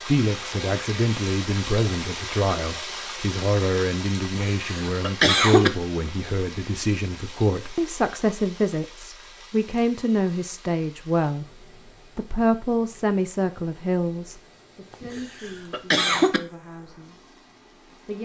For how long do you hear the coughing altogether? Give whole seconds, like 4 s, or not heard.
3 s.